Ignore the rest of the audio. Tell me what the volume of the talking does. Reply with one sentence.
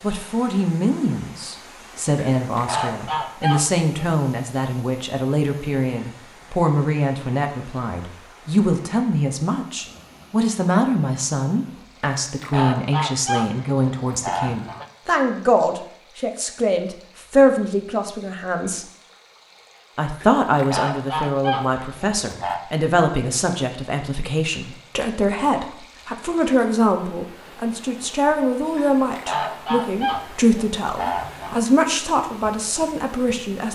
The loudness of the talking stays about the same.